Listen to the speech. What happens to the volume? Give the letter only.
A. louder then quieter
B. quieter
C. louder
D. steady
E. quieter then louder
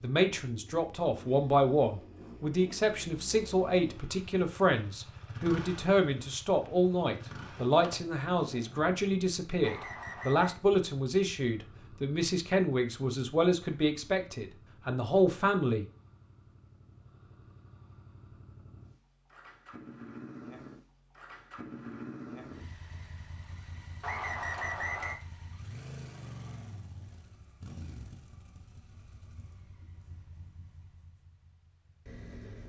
D.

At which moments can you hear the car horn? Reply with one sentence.
The car horn can't be heard in this clip.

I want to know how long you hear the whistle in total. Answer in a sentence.
The whistle can be heard for 2 seconds in total.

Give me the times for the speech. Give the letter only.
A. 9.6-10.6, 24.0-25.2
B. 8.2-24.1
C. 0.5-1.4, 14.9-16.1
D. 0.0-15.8
D.